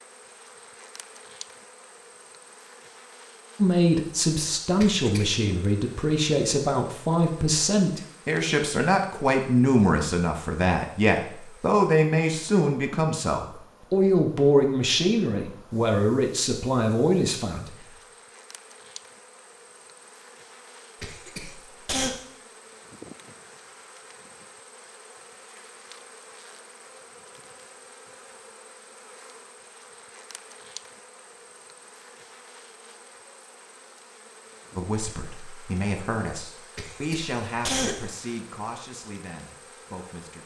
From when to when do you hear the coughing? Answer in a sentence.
You can hear the coughing from 4.8 to 5.5 s, from 21.0 to 22.1 s and from 36.8 to 38.0 s.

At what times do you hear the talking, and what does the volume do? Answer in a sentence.
The talking can be heard from 3.5 to 17.8 s, at a steady volume; and from 34.8 to 40.4 s, getting quieter.